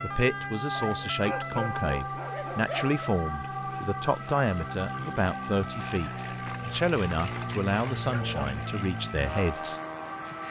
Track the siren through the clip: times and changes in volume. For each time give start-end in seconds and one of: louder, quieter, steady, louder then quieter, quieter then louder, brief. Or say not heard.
0.0-10.4 quieter.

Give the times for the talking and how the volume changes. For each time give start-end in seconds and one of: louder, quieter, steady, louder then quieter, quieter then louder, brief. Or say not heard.
0.0-9.8 steady.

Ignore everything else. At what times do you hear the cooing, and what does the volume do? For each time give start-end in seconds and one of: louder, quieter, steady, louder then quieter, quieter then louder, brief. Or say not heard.
not heard.